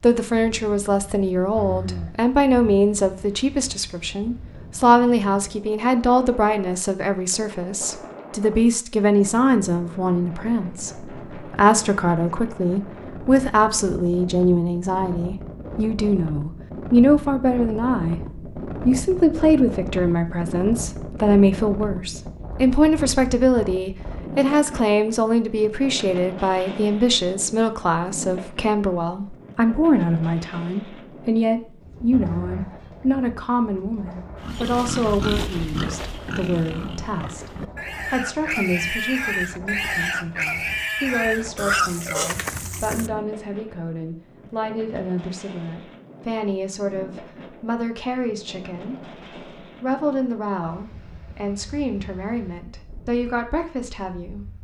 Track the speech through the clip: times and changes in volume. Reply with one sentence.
The speech can be heard from 0.0 to 18.2 s, at a steady volume; and from 18.9 to 54.6 s, getting quieter.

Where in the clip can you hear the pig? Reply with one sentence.
You can hear the pig from 34.4 to 43.1 s.